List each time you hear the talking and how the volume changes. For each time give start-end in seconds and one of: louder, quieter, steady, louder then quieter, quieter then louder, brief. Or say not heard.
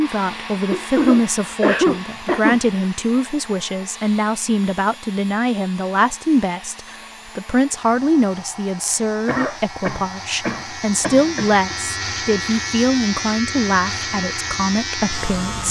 0.0-15.6 steady.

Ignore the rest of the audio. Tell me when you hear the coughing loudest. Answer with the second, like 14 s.
2 s.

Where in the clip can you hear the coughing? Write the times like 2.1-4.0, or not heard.
0.7-2.6, 9.2-11.8.